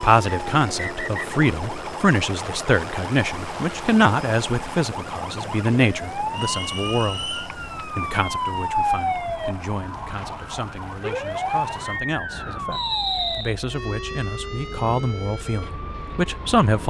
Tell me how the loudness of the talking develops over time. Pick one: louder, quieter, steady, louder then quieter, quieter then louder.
quieter then louder.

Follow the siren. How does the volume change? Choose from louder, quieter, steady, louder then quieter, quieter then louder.
louder then quieter.